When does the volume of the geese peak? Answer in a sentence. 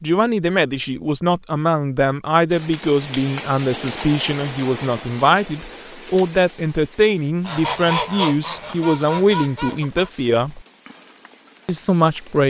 The loudest moment of the geese is at 8 seconds.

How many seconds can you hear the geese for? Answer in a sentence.
The geese can be heard for 3 seconds in total.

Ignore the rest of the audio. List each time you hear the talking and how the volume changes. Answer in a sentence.
You can hear the talking from 0.0 to 10.6 s, at a steady volume; and briefly from 11.7 to 12.4 s.